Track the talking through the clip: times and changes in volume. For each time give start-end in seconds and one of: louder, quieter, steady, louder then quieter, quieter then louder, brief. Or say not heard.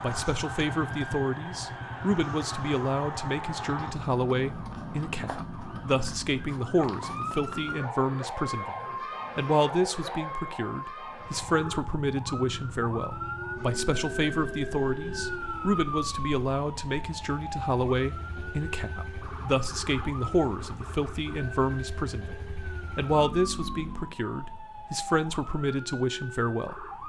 0.0-26.8 steady.